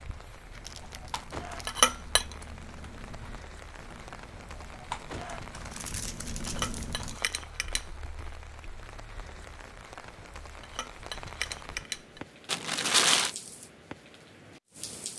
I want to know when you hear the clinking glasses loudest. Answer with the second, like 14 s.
2 s.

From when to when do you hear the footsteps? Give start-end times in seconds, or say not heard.
not heard.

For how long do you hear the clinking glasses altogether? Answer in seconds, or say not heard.
4 s.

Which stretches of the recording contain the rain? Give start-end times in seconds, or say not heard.
0.0-15.1.